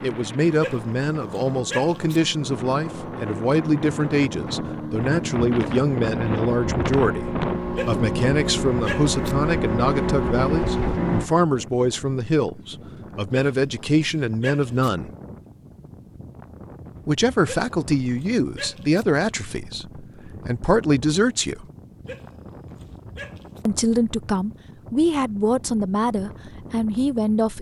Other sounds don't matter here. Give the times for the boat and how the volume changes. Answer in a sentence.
The boat can be heard from 0.0 to 11.3 s, getting louder.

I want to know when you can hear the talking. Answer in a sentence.
You can hear the talking from 0.0 to 15.1 s, from 17.1 to 21.6 s and from 23.6 to 27.5 s.